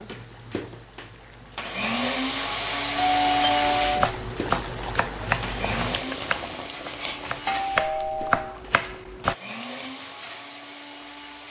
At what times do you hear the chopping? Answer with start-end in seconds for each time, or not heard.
3.6-9.3.